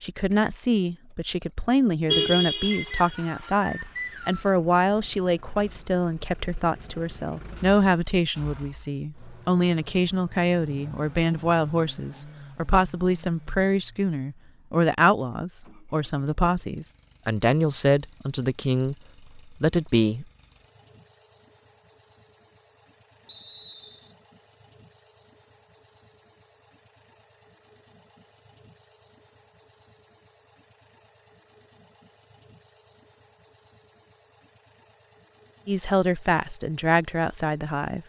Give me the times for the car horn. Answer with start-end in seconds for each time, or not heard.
2.0-3.1.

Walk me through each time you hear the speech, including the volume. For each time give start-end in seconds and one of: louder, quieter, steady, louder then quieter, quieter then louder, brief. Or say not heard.
0.0-20.2 steady
35.6-38.0 brief.